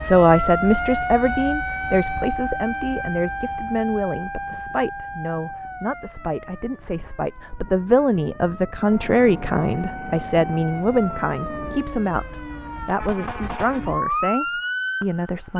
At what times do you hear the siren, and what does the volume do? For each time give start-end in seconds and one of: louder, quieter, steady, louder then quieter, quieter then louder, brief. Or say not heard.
0.0-15.5 quieter then louder.